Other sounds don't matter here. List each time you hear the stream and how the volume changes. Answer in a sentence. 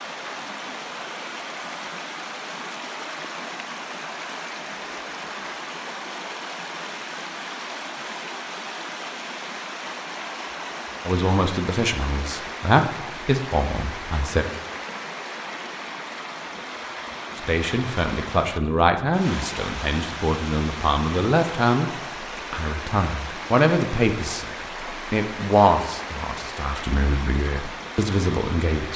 The stream can be heard from 0.0 to 28.9 s, at a steady volume.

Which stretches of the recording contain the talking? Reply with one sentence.
The talking can be heard from 11.1 to 14.4 s and from 17.4 to 28.9 s.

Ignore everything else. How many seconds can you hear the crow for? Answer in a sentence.
You can't hear the crow here.